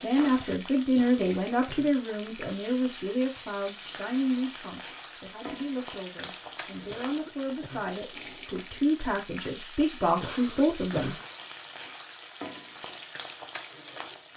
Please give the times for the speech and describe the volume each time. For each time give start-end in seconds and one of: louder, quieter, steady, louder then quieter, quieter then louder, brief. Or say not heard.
0.0-11.2 quieter then louder.